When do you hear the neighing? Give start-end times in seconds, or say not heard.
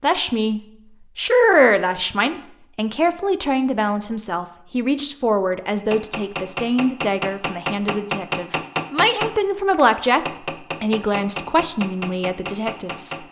not heard.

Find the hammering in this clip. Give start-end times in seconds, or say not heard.
5.8-13.2.